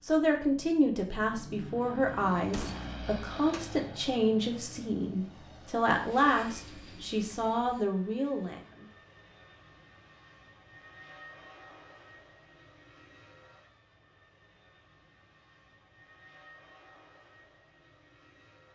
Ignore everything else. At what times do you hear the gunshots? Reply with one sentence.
The gunshots can be heard from 2.5 to 3.0 s.